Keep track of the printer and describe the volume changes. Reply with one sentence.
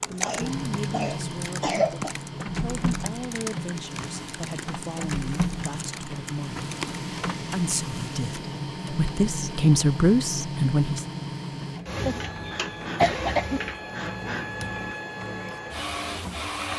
The volume of the printer stays about the same.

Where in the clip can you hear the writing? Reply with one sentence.
The writing can't be heard in this clip.